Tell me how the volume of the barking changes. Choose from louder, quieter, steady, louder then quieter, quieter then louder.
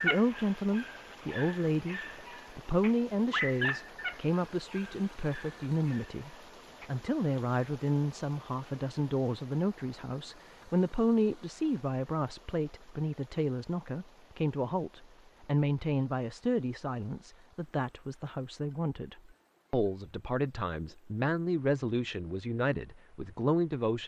louder then quieter.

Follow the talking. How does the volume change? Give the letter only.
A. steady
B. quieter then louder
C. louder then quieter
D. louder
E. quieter
A.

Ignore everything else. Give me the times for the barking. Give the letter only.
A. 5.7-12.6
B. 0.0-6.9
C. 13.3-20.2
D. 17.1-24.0
B.